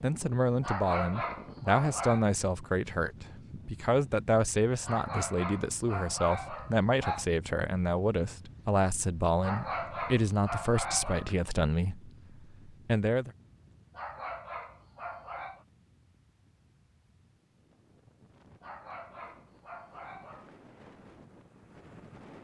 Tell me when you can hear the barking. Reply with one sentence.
The barking can be heard from 0.6 to 2.2 s, from 4.8 to 7.2 s, from 9.4 to 11.5 s, from 13.9 to 15.7 s and from 18.6 to 20.6 s.